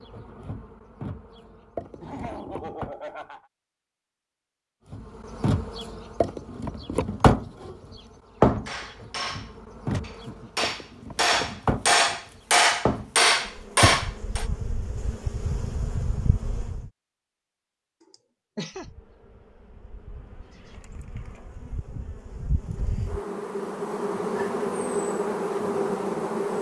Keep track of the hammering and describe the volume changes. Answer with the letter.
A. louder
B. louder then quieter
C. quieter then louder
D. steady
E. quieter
A.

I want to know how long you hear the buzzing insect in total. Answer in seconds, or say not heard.
23 s.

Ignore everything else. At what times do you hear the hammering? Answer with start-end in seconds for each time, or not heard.
8.7-14.4.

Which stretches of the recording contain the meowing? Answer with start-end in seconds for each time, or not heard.
not heard.